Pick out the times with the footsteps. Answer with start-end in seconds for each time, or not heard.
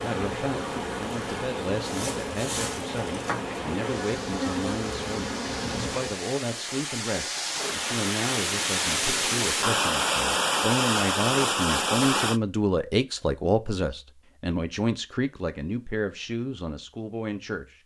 not heard.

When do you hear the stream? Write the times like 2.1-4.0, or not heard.
0.0-12.4.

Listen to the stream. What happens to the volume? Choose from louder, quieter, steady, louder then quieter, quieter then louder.
louder.